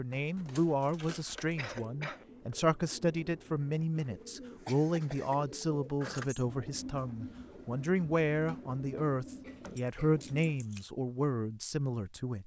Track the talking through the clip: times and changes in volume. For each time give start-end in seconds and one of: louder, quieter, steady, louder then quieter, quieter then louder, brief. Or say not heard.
0.0-12.4 steady.